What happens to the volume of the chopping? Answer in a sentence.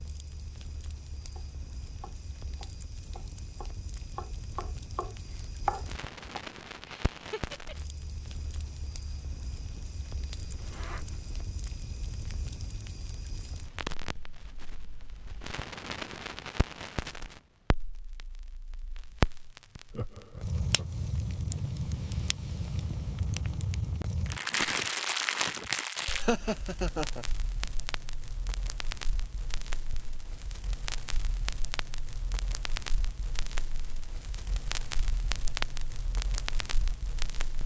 The volume of the chopping goes up.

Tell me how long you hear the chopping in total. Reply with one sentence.
The chopping can be heard for 5 seconds in total.